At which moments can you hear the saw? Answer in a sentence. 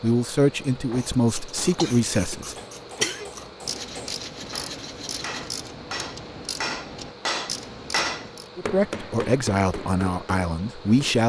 The saw can be heard from 3.8 to 5.5 s.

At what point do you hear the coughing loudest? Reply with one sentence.
The volume of the coughing peaks at 3 seconds.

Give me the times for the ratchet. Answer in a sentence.
You can hear the ratchet from 0.9 to 8.5 s.